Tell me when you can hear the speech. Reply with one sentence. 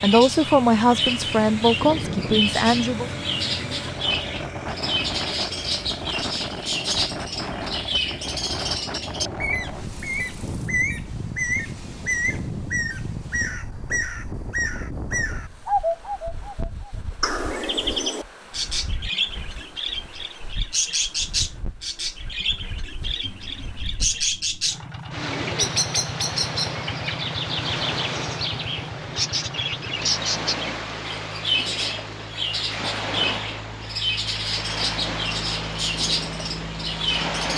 You can hear the speech from 0.0 to 3.1 s.